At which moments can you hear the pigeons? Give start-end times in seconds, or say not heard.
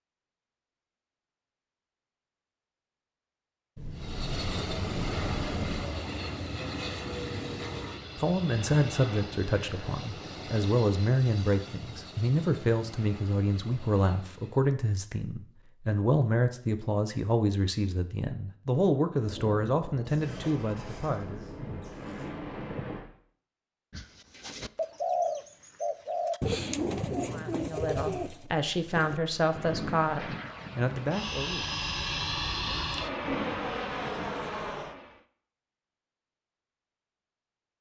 23.9-29.2.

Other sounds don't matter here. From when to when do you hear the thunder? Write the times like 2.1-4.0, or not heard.
3.8-5.8, 19.2-23.1, 33.2-34.6.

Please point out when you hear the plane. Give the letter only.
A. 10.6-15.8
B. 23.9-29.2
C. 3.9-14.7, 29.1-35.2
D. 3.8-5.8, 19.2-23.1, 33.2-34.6
C.